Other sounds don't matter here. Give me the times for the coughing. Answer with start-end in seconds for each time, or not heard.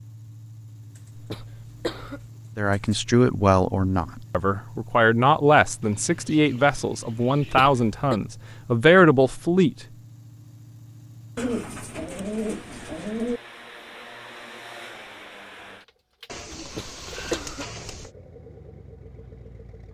1.1-2.2, 7.4-8.2, 16.6-17.8.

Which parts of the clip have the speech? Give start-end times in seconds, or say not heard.
2.5-9.8.